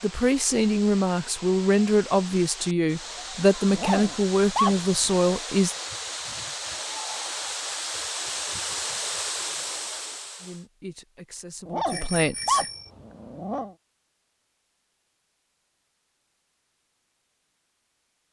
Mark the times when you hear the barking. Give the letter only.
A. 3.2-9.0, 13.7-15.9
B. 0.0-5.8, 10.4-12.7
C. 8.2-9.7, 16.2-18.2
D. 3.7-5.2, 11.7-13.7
D.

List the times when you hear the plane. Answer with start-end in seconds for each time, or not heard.
not heard.